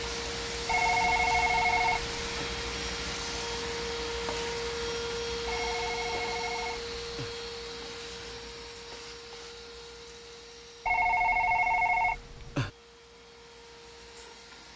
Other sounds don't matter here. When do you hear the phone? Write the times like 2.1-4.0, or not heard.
0.7-2.5, 5.5-7.3, 10.8-12.7.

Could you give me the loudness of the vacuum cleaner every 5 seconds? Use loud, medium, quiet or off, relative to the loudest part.
loud, loud, quiet.